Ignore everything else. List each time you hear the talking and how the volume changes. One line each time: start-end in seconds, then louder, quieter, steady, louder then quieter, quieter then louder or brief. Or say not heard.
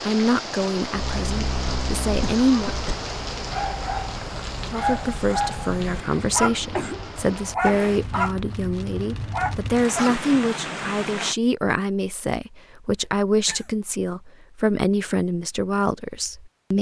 0.0-2.8 brief
4.7-16.7 steady.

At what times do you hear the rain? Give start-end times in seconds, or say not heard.
0.0-11.3.